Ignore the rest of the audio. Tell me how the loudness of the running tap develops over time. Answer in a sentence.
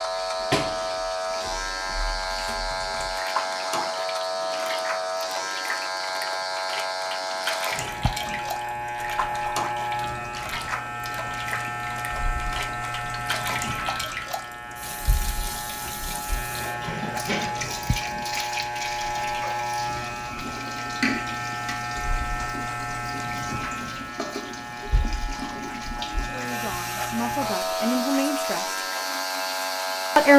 The volume of the running tap stays about the same.